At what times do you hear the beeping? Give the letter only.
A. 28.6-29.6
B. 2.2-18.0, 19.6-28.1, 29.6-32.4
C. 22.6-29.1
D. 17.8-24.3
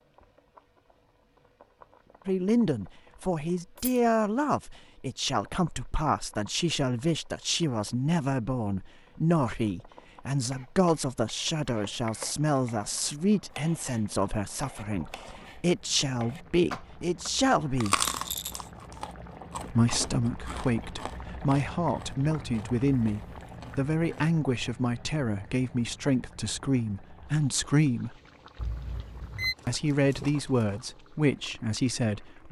A.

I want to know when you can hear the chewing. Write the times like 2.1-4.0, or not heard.
17.8-24.3.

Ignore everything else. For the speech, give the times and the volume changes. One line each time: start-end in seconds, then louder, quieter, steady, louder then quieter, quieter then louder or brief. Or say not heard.
2.2-18.0 steady
19.6-28.1 steady
29.6-32.4 brief.